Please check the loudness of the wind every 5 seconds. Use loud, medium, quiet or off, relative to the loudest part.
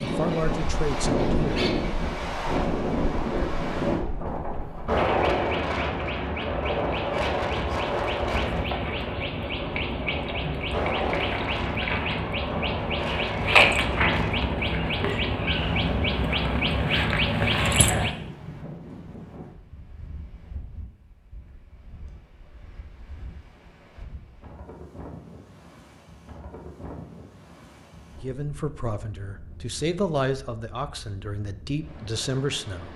loud, loud, medium, quiet, quiet, quiet, quiet.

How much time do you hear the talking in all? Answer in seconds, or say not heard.
6 s.